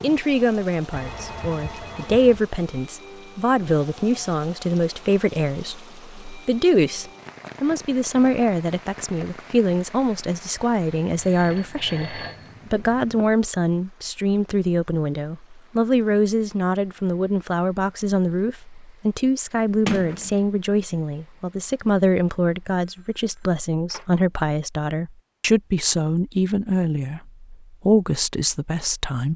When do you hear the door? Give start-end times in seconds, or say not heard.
19.9-20.4.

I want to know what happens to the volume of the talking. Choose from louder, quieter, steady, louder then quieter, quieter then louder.
steady.